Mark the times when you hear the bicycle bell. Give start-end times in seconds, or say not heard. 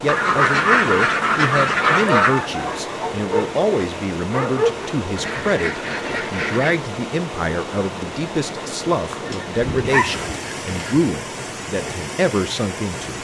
not heard.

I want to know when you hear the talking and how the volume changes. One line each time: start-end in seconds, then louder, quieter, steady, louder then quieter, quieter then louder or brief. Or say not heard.
0.0-13.1 steady.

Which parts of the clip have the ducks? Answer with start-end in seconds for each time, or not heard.
0.1-2.5, 5.2-6.8, 10.0-11.1.